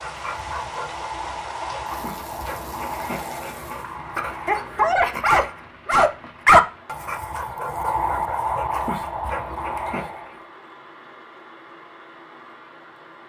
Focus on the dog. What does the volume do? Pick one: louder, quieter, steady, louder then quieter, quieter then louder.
louder then quieter.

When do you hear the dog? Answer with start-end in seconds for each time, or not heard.
0.0-10.3.